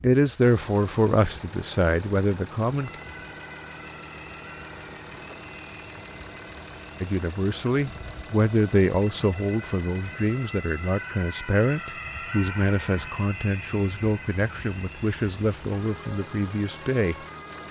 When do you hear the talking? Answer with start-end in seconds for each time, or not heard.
0.0-3.0, 7.0-17.6.